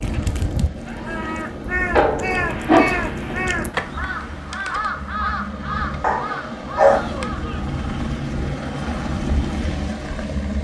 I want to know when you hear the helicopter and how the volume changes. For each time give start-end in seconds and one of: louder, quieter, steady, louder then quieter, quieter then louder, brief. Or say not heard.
0.0-10.5 louder.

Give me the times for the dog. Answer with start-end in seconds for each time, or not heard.
1.9-3.4, 6.0-7.0.